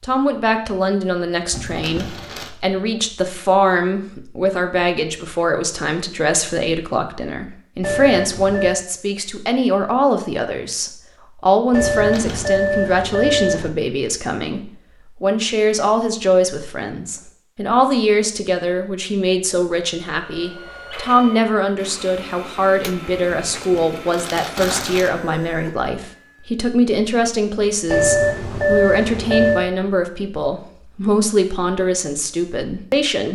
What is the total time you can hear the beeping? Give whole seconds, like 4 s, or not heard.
5 s.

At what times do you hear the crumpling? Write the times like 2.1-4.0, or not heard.
1.5-2.5, 11.8-12.5, 23.3-25.1.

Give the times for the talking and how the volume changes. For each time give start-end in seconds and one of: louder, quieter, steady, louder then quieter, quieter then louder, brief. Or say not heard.
0.0-33.3 steady.